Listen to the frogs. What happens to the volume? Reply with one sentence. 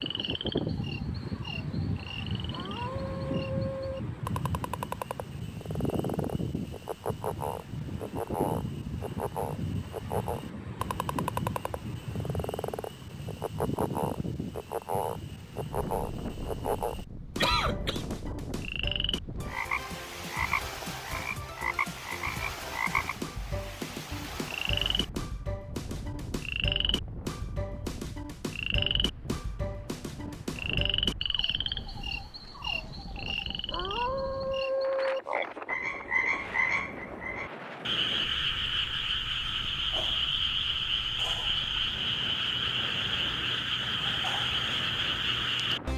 The loudness of the frogs goes up.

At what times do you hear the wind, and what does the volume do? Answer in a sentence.
The wind can be heard from 0.0 to 45.9 s, getting quieter.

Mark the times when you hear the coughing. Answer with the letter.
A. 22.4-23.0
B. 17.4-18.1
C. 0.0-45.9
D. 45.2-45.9
B.